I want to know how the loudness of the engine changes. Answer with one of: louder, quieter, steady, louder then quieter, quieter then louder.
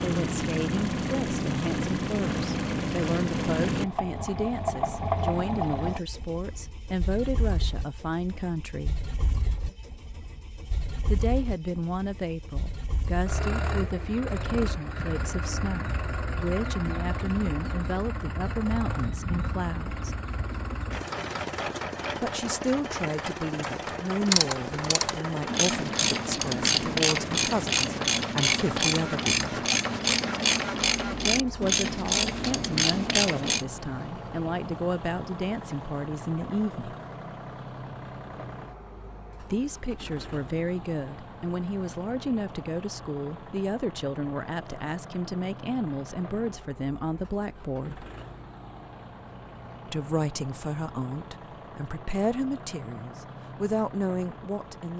quieter.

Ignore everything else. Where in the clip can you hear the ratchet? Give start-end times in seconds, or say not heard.
24.2-33.6.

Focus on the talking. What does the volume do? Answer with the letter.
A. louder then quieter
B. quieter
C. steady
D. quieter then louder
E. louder
C.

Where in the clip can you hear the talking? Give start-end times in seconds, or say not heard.
0.0-9.0, 11.1-20.1, 22.2-29.6, 31.1-37.0, 39.4-48.0, 49.9-54.9.